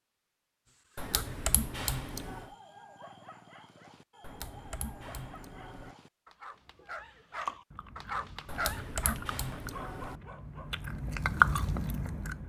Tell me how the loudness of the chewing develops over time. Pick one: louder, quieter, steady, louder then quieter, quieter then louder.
quieter then louder.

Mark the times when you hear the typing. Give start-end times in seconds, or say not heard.
0.9-2.5, 4.2-6.0, 8.4-10.2.